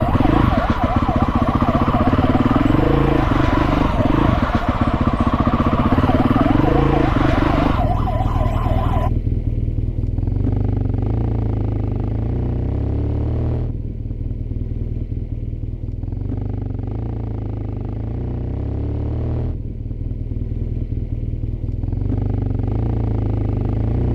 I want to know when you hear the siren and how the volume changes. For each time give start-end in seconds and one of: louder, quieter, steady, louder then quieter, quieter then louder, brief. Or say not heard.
0.0-9.1 steady.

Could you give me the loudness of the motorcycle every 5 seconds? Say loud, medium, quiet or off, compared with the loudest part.
loud, loud, medium, medium, medium.